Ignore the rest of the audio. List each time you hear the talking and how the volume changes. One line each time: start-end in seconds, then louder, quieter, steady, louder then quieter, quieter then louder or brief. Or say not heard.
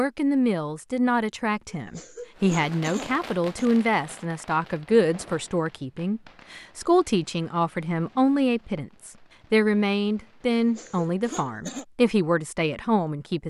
0.0-13.4 steady.